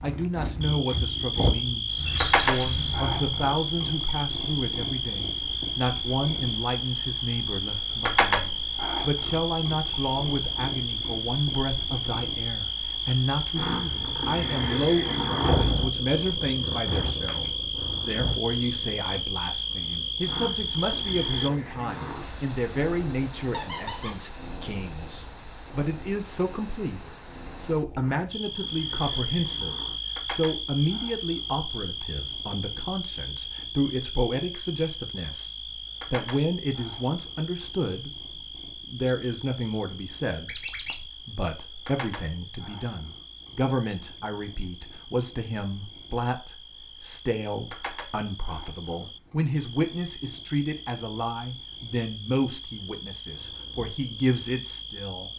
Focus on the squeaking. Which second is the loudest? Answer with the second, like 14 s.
2 s.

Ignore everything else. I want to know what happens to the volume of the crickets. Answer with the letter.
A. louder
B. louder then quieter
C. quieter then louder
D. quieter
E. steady
D.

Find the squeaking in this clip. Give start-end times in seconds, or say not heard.
1.9-3.5, 23.5-24.1, 40.5-41.0.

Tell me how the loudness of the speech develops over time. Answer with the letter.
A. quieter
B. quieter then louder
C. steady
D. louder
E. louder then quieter
C.